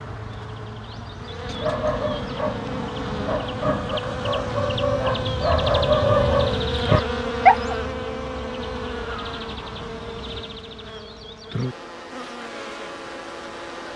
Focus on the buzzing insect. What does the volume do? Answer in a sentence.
The loudness of the buzzing insect goes up, then down.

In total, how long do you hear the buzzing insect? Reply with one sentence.
You can hear the buzzing insect for 14 seconds altogether.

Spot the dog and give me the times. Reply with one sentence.
The dog can be heard from 1.4 to 7.8 s.